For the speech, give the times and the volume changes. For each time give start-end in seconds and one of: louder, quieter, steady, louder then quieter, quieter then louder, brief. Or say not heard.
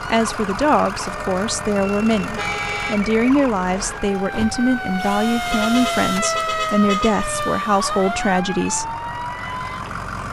0.0-8.9 steady.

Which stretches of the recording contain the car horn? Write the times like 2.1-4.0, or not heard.
2.2-3.0, 5.5-7.5.